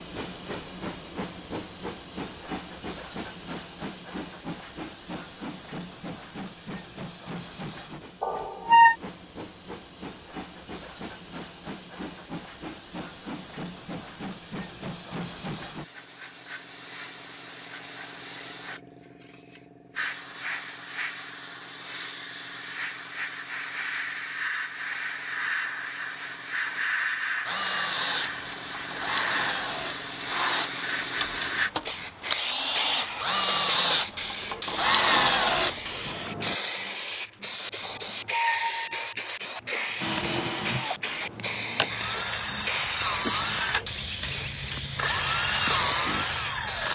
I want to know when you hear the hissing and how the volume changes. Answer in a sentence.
The hissing can be heard from 0.0 to 46.8 s, getting louder.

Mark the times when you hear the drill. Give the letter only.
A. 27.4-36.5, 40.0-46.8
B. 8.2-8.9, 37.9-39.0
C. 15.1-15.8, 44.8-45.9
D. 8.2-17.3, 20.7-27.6
A.